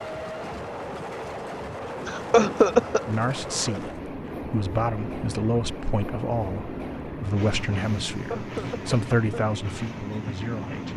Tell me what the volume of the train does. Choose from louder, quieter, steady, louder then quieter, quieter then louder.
steady.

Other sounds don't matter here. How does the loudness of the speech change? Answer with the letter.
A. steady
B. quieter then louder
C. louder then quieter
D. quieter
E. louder
A.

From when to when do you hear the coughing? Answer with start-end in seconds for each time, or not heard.
2.0-3.0, 8.1-9.5.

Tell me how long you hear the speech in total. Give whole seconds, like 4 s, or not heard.
8 s.